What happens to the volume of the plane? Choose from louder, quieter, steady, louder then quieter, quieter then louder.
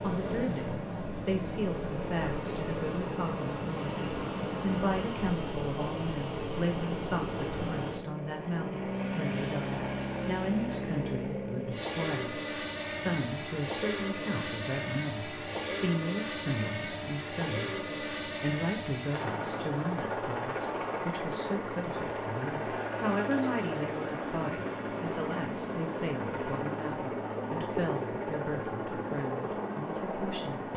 steady.